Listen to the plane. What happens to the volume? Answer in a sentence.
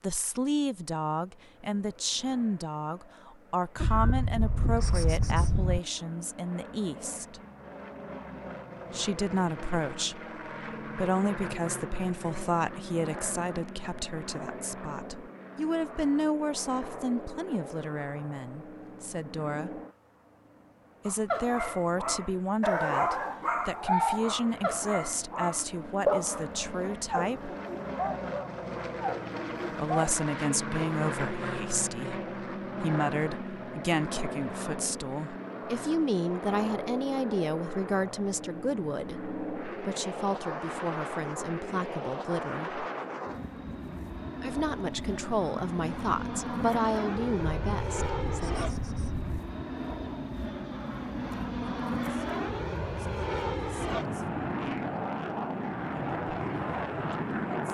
The volume of the plane goes up.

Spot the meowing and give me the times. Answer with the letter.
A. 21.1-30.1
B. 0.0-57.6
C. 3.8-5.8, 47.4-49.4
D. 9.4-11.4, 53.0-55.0
C.